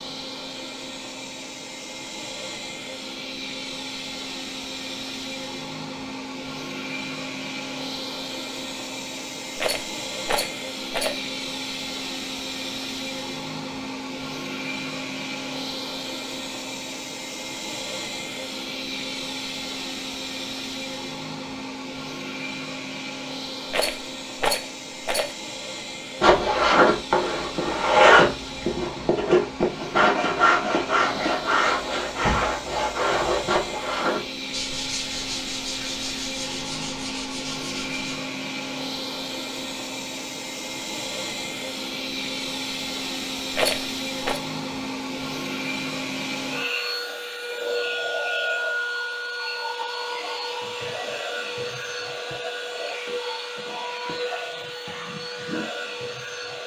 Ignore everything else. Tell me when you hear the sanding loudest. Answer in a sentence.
The loudest moment of the sanding is at 28 seconds.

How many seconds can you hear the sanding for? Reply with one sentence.
You can hear the sanding for 12 seconds altogether.